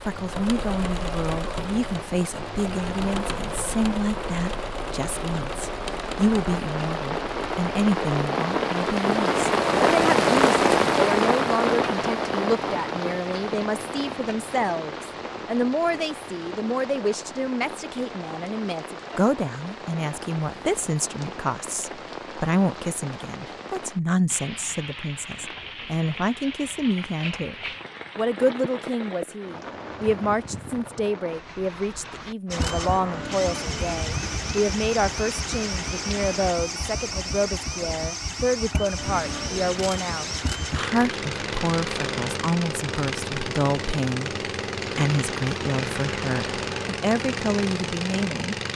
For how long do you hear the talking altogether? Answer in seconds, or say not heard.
47 s.